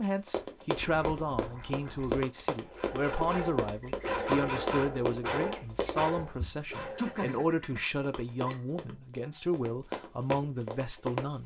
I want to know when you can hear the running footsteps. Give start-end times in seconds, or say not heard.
0.2-6.0, 8.0-11.4.